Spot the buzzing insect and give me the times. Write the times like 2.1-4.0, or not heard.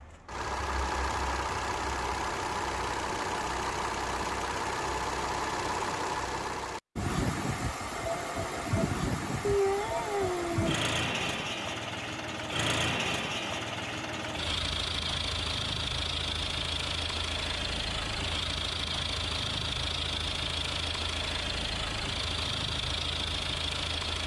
not heard.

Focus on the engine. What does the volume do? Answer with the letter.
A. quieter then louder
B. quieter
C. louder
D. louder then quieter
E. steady
E.